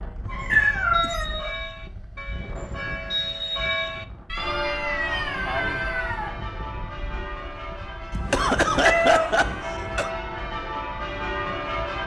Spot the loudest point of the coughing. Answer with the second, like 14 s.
9 s.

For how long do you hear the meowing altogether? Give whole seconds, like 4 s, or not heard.
4 s.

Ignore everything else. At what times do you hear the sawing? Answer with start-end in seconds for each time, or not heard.
not heard.